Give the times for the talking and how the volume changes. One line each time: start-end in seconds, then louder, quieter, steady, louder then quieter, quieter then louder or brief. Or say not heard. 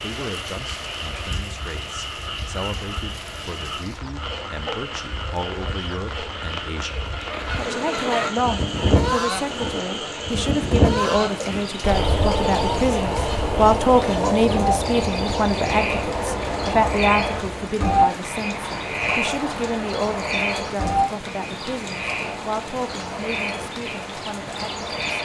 0.0-24.9 louder then quieter.